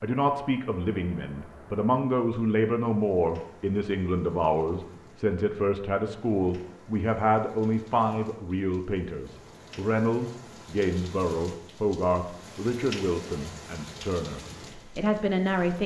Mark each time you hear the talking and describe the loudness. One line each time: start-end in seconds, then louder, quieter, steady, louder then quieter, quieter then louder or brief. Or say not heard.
0.0-15.8 steady.